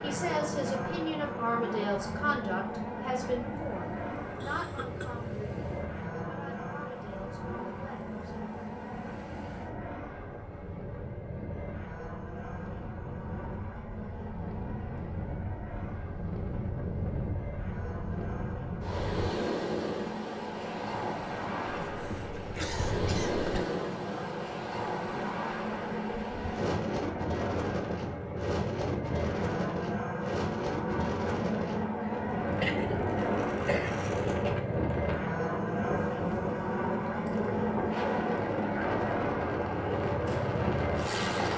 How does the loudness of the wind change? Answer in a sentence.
The loudness of the wind goes up.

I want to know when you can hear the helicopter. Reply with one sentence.
The helicopter can be heard from 0.0 to 41.5 s.